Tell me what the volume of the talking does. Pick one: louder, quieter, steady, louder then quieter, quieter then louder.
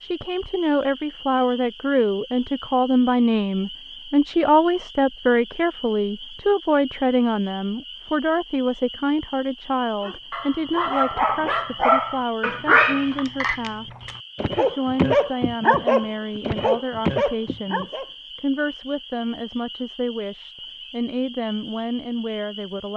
quieter.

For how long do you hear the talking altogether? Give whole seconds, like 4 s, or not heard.
23 s.